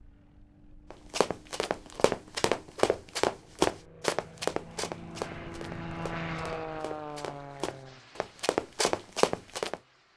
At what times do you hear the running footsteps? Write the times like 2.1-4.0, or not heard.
0.9-9.8.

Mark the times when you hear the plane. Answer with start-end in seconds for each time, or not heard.
0.0-10.1.